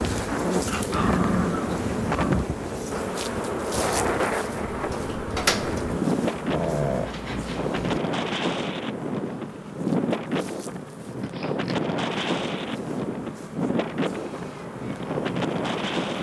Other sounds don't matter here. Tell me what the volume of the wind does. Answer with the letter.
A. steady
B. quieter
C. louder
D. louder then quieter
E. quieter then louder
A.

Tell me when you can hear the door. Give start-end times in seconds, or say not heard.
4.7-5.8.